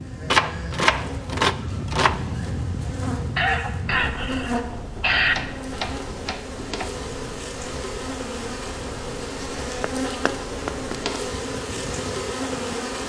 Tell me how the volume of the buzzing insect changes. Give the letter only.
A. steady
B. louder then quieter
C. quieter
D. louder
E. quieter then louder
D.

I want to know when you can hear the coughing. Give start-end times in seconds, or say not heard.
3.4-5.3.